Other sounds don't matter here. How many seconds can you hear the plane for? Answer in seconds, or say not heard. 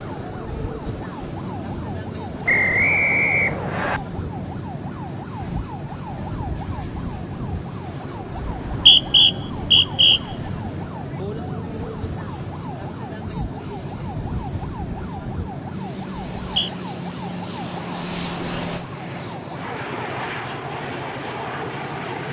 22 s.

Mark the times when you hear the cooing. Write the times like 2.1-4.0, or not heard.
not heard.